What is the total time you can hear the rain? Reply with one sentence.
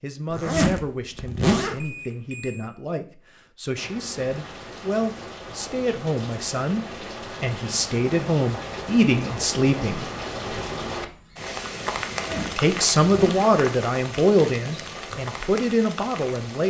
The rain can be heard for 13 seconds in total.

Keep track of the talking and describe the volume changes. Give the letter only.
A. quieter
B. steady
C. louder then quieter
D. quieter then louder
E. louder
E.